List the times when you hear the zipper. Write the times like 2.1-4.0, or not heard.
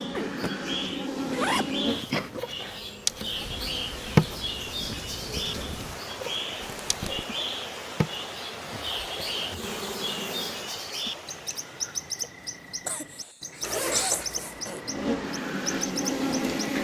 0.1-2.4, 6.6-7.2, 13.6-14.6.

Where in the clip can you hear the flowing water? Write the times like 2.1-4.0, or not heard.
3.0-16.7.